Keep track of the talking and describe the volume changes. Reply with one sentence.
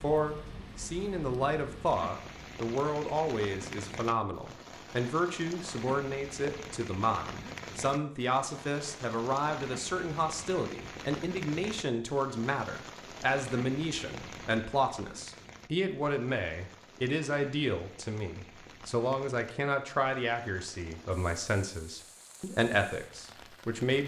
The loudness of the talking stays about the same.